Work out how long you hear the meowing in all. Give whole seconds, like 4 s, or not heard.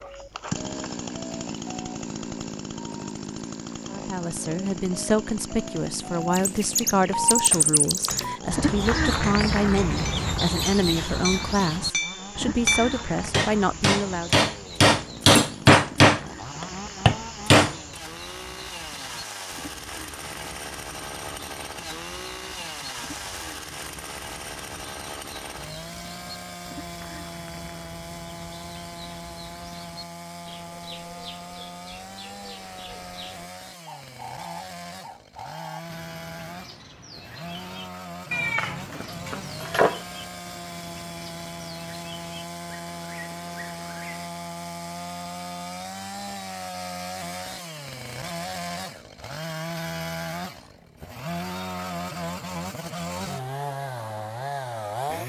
2 s.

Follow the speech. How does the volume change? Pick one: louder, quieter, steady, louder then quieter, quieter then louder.
steady.